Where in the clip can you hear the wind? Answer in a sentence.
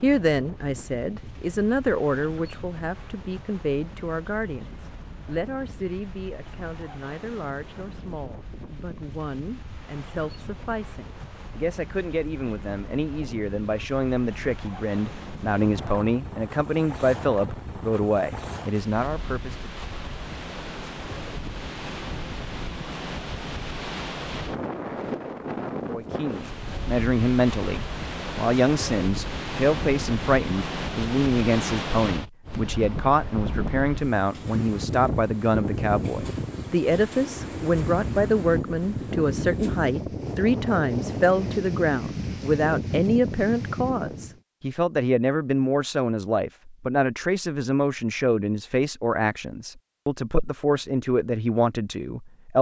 You can hear the wind from 0.0 to 44.4 s.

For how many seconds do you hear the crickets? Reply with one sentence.
You can't hear the crickets here.